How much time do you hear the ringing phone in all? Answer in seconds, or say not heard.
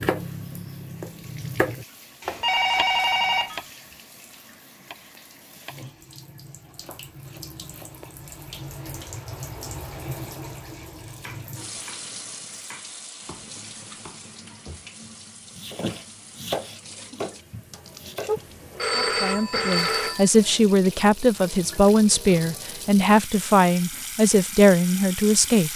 3 s.